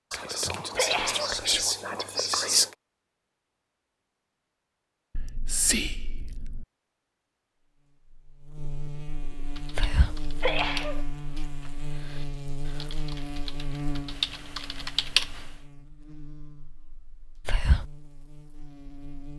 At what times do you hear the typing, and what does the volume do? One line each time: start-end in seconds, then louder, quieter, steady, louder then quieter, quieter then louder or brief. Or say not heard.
9.4-15.7 quieter then louder.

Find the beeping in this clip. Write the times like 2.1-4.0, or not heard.
not heard.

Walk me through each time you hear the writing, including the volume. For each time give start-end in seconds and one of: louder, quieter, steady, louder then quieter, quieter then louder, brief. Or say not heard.
not heard.